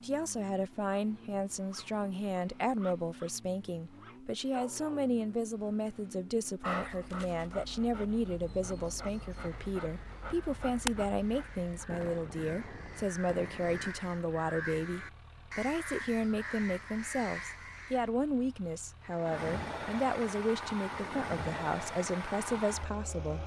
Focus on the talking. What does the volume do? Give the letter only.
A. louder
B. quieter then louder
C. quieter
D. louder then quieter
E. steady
E.